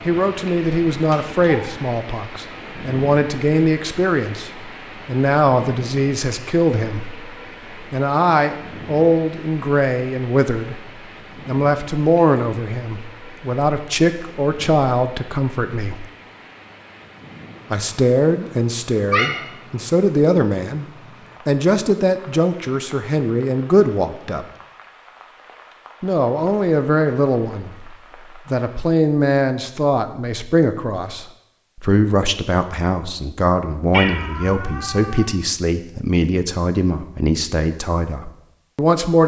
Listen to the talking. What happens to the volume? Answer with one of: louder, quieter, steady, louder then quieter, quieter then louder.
steady.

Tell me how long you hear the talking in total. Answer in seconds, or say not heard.
35 s.